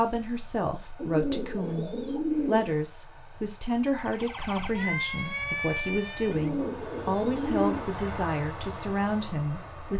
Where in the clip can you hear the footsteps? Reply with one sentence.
You can't hear the footsteps here.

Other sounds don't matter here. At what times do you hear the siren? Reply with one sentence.
The siren can be heard from 4.0 to 6.5 s.